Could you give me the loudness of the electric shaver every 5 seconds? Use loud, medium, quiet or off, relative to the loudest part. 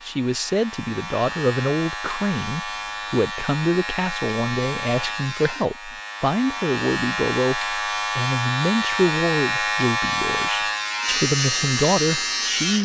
medium, loud, loud.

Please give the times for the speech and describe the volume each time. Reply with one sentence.
The speech can be heard from 0.0 to 12.8 s, at a steady volume.